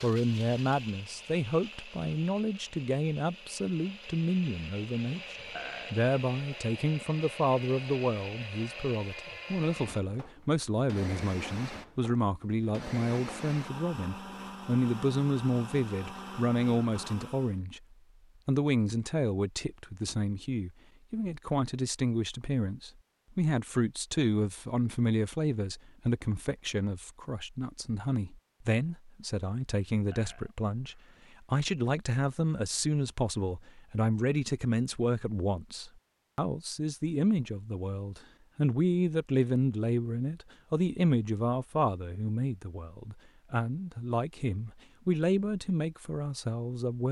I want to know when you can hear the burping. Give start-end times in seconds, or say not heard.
5.5-6.0, 30.1-31.2.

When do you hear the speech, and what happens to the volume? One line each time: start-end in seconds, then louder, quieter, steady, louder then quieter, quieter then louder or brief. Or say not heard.
0.0-17.8 steady
18.4-47.0 steady.